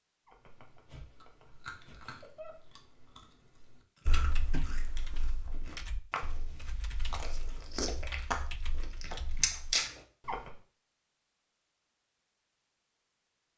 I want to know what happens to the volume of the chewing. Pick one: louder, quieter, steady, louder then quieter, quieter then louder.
louder.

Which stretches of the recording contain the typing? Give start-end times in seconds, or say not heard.
4.0-9.8.